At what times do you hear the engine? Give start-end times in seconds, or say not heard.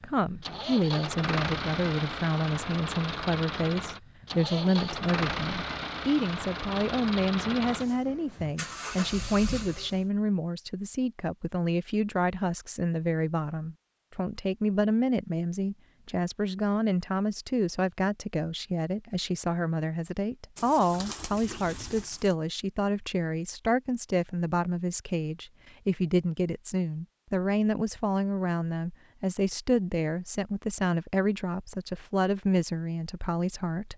0.0-10.1.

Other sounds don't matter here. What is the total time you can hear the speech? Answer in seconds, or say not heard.
34 s.